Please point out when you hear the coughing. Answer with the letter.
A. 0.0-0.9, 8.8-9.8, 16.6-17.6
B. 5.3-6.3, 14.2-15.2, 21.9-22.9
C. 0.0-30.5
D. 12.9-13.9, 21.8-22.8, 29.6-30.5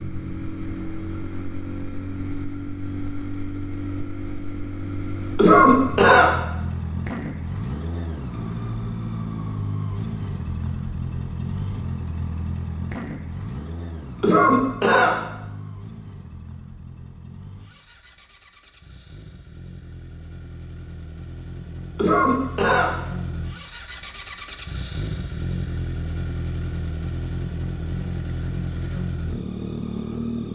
B.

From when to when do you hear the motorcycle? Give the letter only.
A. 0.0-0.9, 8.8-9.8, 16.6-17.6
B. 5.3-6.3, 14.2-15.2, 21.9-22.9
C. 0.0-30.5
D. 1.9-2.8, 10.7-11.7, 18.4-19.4
C.